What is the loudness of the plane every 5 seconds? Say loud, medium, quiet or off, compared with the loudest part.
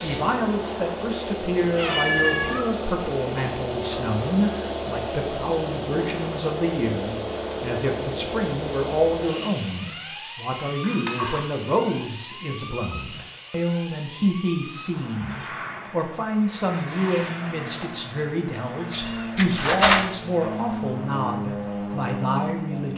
loud, loud, medium, medium, loud.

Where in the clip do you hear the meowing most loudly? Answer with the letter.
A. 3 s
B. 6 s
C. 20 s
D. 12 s
C.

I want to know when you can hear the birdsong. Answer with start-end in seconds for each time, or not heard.
not heard.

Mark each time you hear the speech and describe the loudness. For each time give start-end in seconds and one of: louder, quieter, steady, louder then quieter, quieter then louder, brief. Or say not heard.
0.0-22.9 steady.